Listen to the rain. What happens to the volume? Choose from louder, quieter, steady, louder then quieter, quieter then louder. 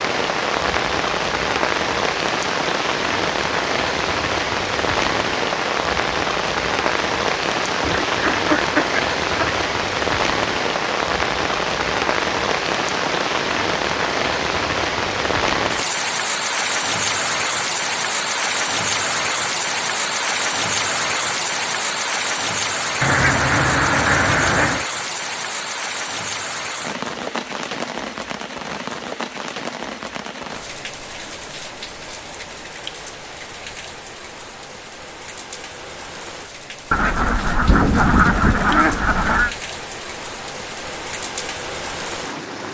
quieter.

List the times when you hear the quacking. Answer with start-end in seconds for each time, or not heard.
7.8-9.6, 23.0-24.9, 36.9-39.5.